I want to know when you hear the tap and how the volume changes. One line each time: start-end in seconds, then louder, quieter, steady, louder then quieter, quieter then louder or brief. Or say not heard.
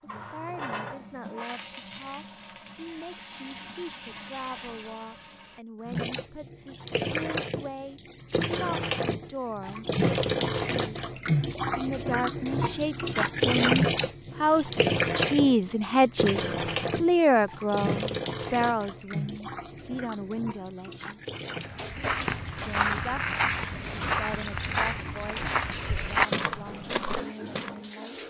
0.1-28.2 louder then quieter.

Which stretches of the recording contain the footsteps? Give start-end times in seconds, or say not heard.
21.6-27.8.